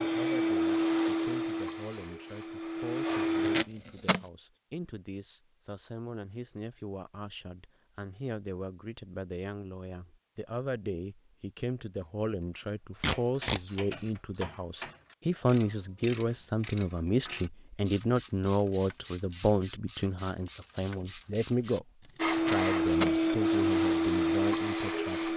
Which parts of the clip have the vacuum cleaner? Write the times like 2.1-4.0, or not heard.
0.0-3.6, 22.1-25.3.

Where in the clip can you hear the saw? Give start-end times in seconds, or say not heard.
not heard.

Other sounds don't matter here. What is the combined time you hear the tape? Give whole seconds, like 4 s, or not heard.
3 s.